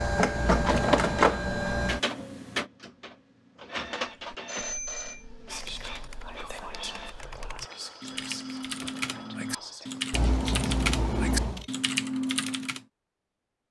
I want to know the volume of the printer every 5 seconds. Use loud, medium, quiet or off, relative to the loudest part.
loud, quiet, off.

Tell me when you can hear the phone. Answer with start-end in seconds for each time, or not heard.
4.5-5.2, 7.6-9.7.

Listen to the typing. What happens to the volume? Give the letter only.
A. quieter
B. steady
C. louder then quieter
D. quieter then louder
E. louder
E.